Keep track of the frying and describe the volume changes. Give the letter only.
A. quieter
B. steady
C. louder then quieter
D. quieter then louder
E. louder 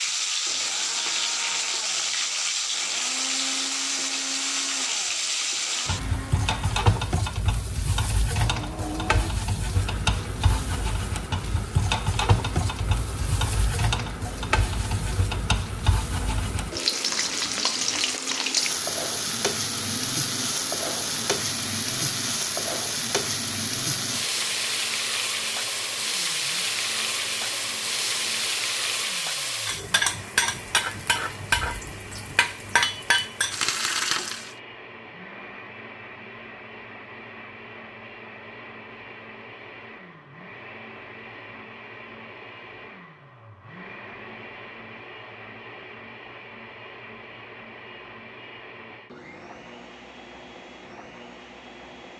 B.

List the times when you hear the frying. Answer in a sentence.
The frying can be heard from 0.0 to 34.5 s.